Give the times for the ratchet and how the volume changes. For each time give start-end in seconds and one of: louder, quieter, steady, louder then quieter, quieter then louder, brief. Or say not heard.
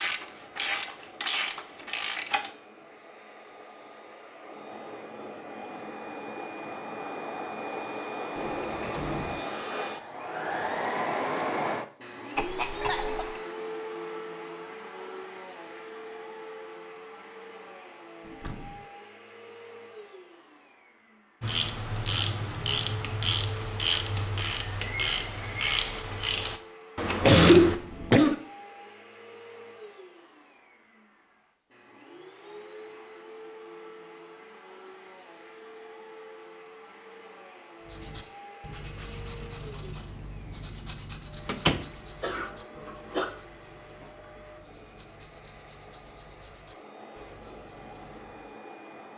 0.0-2.5 brief
21.4-27.8 steady.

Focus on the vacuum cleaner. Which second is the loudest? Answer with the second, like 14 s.
11 s.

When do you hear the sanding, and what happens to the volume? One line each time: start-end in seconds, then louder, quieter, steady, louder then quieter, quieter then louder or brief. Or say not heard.
37.8-48.5 quieter.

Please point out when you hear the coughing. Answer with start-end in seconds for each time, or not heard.
12.3-13.4, 27.2-28.4, 42.2-43.2.